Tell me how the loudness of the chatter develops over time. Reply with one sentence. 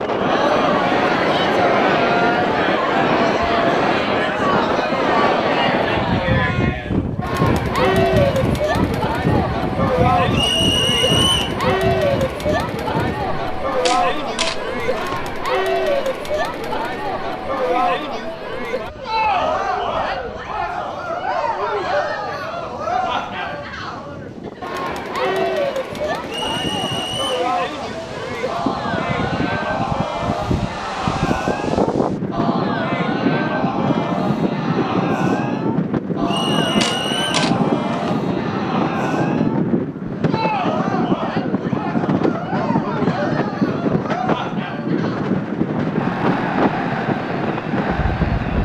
The volume of the chatter goes down.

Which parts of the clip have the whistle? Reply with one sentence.
You can hear the whistle from 10.3 to 11.6 s, from 26.2 to 27.4 s and from 36.2 to 37.5 s.